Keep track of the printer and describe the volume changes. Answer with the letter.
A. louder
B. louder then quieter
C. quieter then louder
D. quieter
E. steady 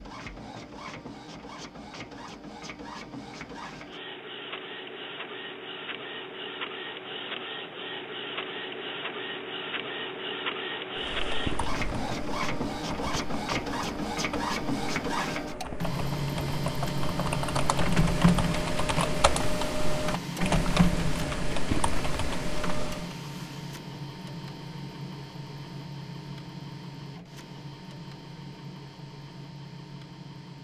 B.